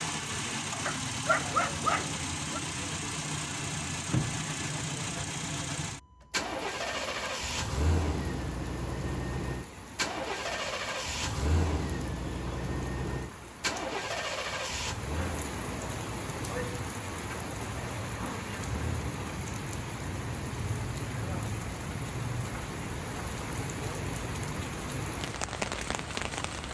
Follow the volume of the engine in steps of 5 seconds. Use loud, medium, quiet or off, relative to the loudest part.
loud, loud, loud, medium, medium, medium.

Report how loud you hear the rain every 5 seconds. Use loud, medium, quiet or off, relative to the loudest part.
off, medium, medium, loud, loud, loud.